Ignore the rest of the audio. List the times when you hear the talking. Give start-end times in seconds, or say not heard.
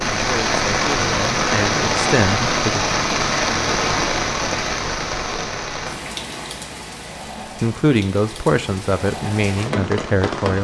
0.0-2.9, 7.6-10.5.